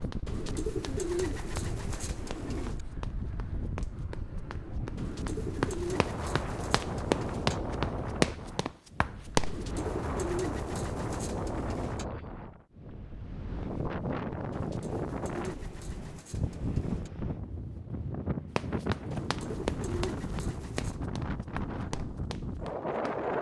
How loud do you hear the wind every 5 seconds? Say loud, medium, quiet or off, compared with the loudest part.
medium, loud, loud, loud, loud.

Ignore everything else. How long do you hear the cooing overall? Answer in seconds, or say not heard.
12 s.